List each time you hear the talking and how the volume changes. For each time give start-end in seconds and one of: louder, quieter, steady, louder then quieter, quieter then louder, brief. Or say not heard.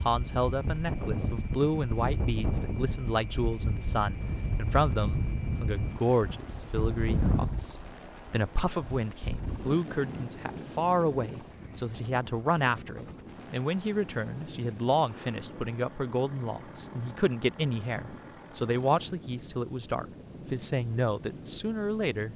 0.1-22.3 steady.